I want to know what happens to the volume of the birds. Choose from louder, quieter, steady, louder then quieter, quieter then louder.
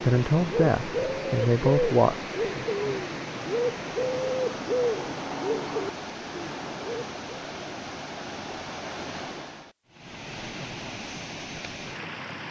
steady.